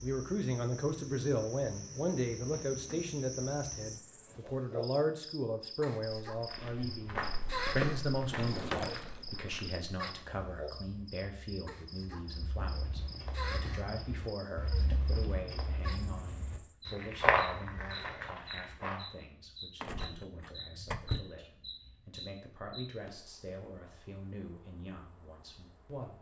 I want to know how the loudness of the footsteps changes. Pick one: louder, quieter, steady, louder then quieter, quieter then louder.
quieter then louder.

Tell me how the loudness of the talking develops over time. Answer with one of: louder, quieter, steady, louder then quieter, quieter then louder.
quieter.